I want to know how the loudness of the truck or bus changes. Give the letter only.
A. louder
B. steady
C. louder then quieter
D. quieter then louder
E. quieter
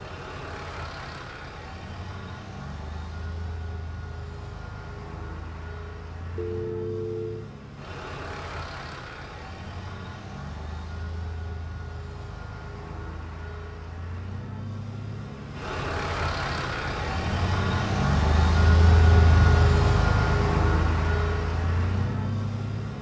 A.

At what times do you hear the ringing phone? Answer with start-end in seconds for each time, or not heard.
6.3-7.5.